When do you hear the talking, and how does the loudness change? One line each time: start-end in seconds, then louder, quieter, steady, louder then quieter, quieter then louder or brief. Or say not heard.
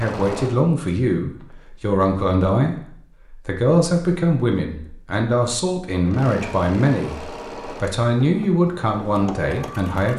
0.0-10.1 steady.